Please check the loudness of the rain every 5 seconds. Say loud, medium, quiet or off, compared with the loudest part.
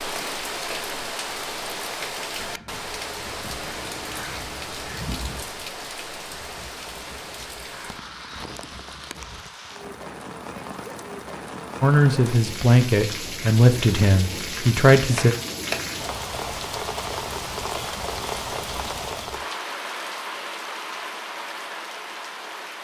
loud, medium, loud, loud, loud.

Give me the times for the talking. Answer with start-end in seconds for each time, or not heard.
11.8-15.3.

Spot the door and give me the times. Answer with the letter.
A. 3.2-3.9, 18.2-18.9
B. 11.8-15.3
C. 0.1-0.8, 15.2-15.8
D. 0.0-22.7
C.